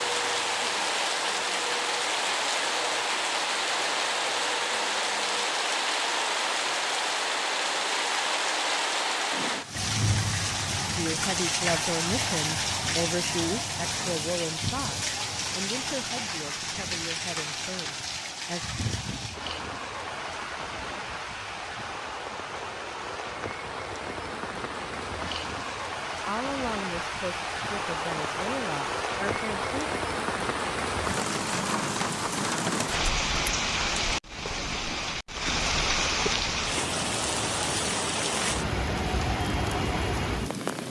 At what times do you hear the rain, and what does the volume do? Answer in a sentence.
You can hear the rain from 0.0 to 40.8 s, getting quieter then louder.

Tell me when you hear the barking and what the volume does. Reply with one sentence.
You can't hear the barking here.